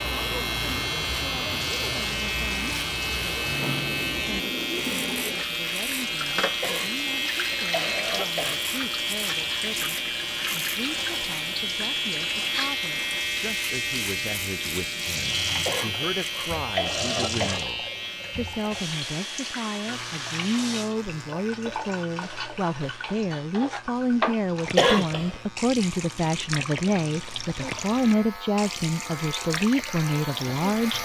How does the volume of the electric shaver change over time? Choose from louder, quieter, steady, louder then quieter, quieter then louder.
quieter.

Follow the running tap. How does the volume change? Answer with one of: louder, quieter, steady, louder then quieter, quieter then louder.
steady.